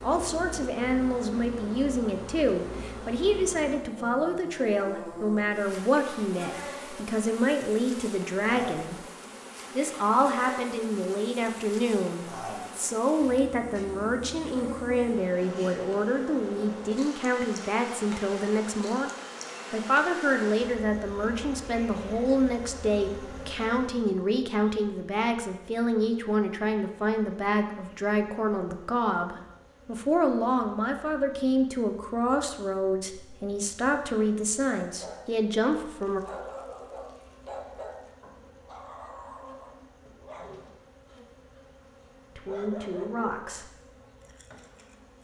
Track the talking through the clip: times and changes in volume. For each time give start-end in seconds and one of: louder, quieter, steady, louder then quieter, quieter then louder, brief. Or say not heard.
0.0-8.9 steady
9.8-19.1 steady
19.7-36.2 steady
42.4-43.7 brief.